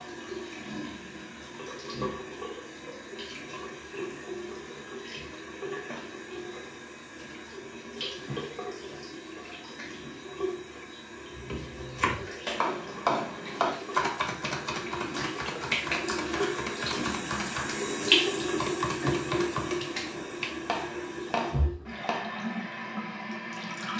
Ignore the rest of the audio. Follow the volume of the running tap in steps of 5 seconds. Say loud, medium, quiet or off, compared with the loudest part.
medium, medium, medium, loud, medium.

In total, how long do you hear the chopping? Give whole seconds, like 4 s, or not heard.
11 s.